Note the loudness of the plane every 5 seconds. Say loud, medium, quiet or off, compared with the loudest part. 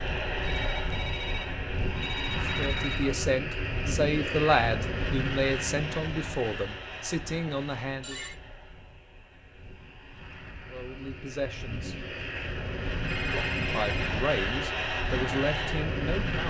loud, medium, loud, loud.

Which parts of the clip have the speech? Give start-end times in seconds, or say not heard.
2.5-8.2, 10.7-11.9, 13.2-16.4.